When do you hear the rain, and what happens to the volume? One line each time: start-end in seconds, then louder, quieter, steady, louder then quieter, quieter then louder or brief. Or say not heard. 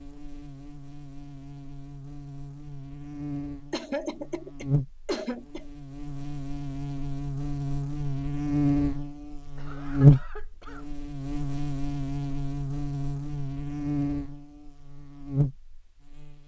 not heard.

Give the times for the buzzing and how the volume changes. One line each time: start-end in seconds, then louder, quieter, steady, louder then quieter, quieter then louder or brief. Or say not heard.
0.0-16.4 louder then quieter.